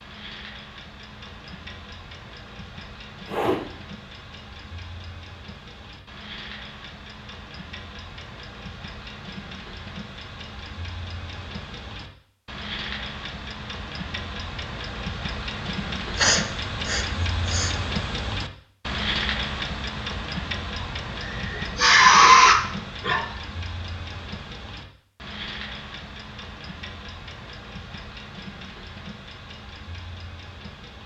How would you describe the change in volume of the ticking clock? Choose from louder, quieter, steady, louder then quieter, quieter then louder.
louder then quieter.